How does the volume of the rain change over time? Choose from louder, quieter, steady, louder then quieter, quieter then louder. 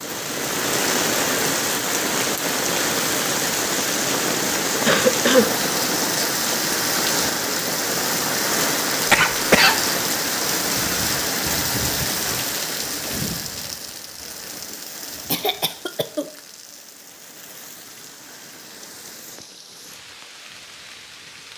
quieter.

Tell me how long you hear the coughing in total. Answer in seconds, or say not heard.
2 s.